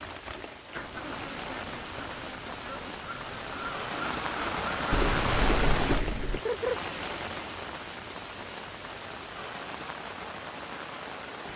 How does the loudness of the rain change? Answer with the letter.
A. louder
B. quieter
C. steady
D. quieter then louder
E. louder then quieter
E.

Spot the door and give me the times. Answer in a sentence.
You can hear the door from 4.9 to 6.4 s.